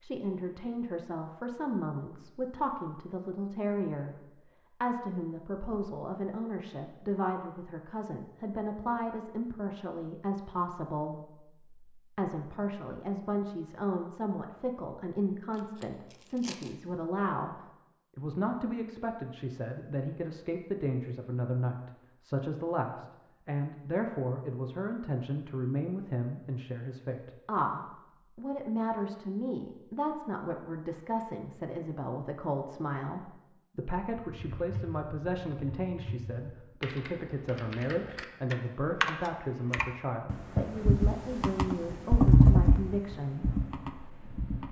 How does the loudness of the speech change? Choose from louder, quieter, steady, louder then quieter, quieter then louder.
steady.